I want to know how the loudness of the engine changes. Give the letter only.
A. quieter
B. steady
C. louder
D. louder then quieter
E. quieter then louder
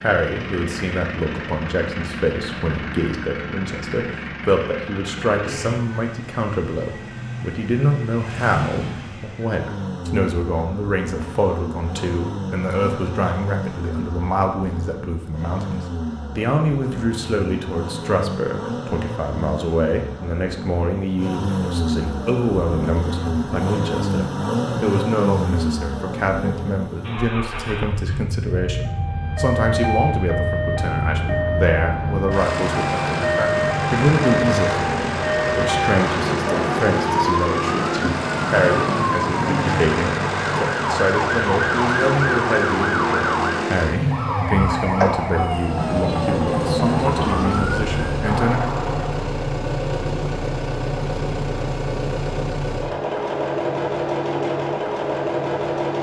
C.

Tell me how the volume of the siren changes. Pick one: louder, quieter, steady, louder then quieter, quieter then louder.
steady.